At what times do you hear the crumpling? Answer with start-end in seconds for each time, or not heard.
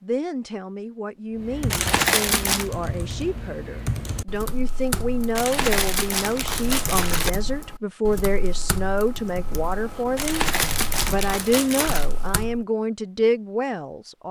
1.7-2.7, 5.3-7.3, 10.2-12.1.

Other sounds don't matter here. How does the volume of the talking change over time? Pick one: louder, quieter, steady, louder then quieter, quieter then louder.
louder.